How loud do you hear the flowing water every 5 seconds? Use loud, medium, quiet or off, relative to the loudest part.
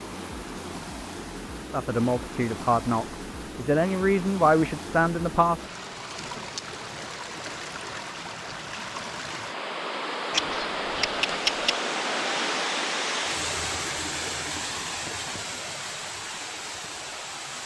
medium, medium, loud, medium.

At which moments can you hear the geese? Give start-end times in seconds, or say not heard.
10.3-11.8.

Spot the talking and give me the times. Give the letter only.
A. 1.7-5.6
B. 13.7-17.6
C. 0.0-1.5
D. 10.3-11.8
A.